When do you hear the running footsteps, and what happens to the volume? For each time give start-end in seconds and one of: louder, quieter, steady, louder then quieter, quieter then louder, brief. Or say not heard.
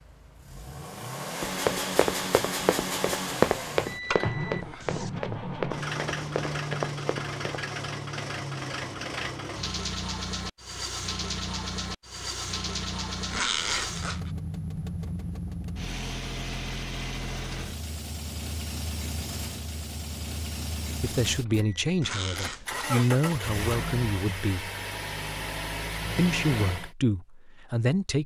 1.4-7.7 louder then quieter.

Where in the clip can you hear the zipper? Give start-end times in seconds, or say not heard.
3.9-5.2, 13.3-14.3, 22.0-23.1.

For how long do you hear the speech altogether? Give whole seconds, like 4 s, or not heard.
6 s.